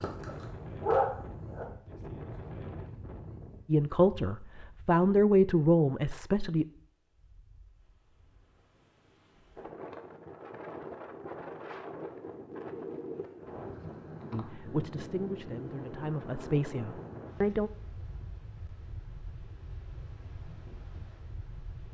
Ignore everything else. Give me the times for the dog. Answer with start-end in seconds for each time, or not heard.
0.0-1.6.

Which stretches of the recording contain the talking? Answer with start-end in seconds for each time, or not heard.
3.6-6.7, 14.3-17.7.